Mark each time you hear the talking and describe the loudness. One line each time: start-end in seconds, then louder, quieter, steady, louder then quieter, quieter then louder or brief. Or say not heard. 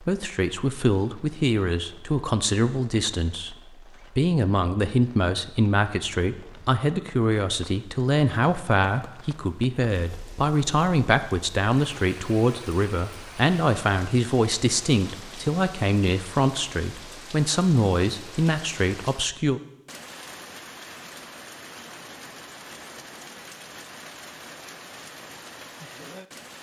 0.0-19.6 steady.